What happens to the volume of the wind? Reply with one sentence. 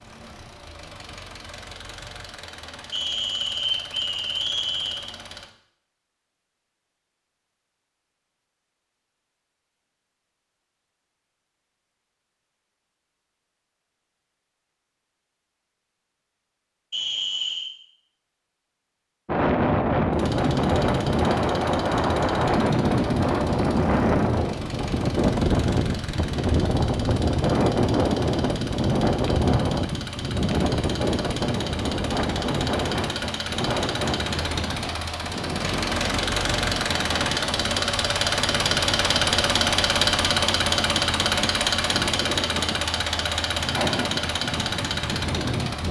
The volume of the wind goes down.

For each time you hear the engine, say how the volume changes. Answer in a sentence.
You can hear the engine from 0.0 to 5.5 s, at a steady volume; and from 20.1 to 45.8 s, getting louder.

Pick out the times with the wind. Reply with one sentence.
The wind can be heard from 19.2 to 45.8 s.